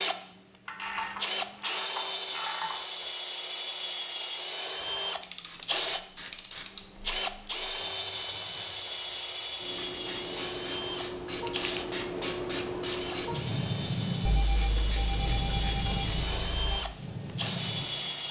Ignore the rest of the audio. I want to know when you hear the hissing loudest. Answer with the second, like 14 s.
14 s.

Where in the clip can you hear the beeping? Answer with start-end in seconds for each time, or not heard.
14.2-16.8.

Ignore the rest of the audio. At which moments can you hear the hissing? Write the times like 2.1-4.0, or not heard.
5.5-18.2.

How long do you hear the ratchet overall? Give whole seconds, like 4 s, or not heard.
6 s.